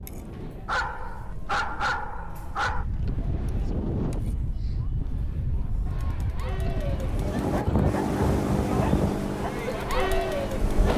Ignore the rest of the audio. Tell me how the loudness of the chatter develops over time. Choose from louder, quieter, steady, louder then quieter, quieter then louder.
louder.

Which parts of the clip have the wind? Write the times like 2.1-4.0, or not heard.
0.0-10.9.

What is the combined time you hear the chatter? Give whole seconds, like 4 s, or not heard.
11 s.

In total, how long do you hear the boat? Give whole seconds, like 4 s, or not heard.
4 s.